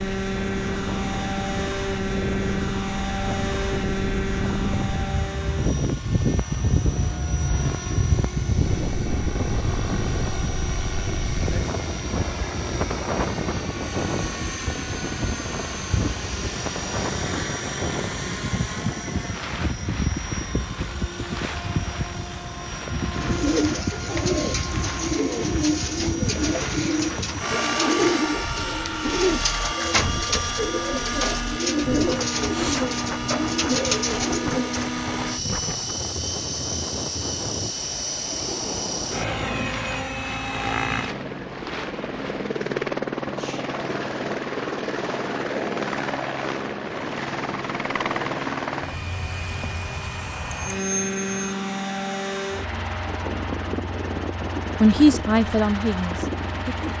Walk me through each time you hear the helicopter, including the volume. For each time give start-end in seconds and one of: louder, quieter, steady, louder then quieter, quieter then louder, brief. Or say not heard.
0.0-56.9 steady.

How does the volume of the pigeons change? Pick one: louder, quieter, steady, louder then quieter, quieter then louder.
steady.